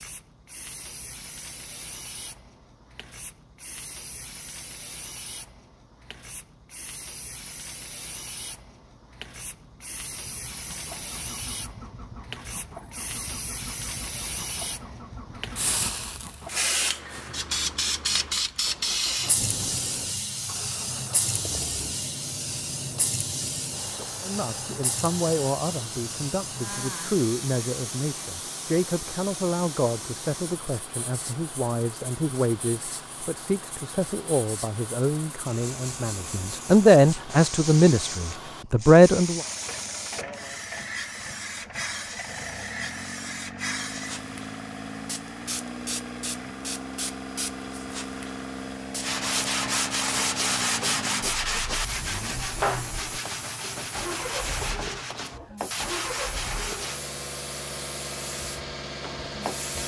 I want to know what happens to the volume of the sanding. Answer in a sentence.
The loudness of the sanding goes down.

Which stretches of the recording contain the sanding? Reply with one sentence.
The sanding can be heard from 49.0 to 57.0 s.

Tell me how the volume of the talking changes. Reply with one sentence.
The volume of the talking goes up.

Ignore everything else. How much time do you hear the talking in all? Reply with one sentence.
The talking can be heard for 15 seconds in total.